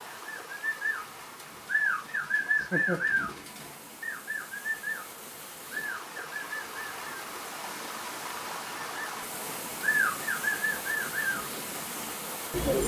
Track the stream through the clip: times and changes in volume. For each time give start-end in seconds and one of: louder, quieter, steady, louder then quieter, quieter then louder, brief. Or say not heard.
0.0-12.8 louder.